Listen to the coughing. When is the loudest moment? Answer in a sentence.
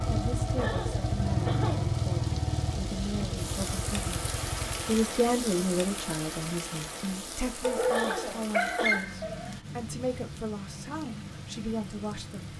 The loudest moment of the coughing is at 8 seconds.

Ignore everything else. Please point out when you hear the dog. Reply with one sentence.
The dog can be heard from 7.6 to 9.6 s.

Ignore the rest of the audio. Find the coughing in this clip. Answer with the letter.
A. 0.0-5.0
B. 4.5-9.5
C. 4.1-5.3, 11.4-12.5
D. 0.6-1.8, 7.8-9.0
D.